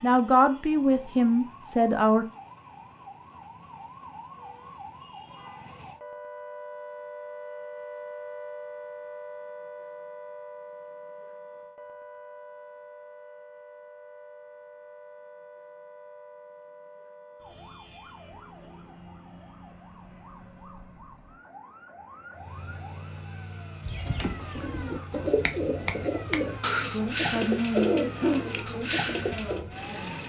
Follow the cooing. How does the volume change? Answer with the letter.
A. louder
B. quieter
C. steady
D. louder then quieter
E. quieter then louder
A.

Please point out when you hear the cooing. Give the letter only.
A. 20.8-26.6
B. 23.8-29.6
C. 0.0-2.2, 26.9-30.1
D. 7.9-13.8
B.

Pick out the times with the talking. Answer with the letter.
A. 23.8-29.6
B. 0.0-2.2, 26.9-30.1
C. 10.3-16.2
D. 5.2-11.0
B.